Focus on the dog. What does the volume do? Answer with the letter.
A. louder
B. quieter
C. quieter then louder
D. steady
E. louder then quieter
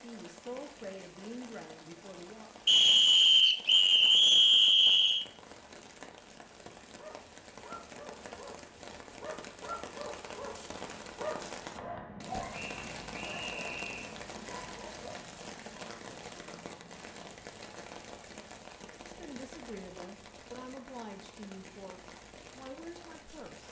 E.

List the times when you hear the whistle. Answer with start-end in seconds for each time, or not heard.
2.6-5.2, 12.5-14.2.